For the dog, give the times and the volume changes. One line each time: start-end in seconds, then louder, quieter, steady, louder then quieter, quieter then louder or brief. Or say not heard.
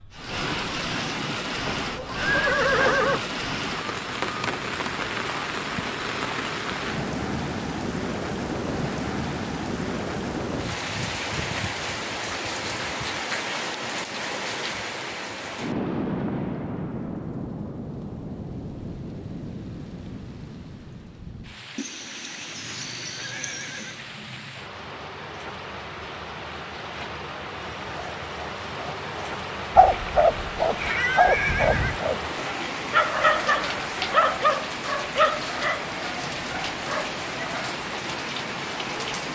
27.9-37.7 quieter.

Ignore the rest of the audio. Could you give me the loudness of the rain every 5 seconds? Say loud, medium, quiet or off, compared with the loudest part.
loud, loud, loud, loud, medium, medium, loud, loud.